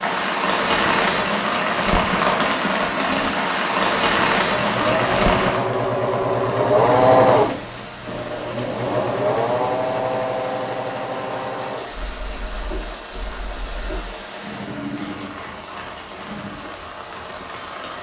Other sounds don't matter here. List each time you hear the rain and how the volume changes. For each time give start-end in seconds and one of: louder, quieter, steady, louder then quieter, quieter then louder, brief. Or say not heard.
0.0-17.9 quieter.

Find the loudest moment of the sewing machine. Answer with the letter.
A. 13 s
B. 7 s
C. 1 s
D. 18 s
B.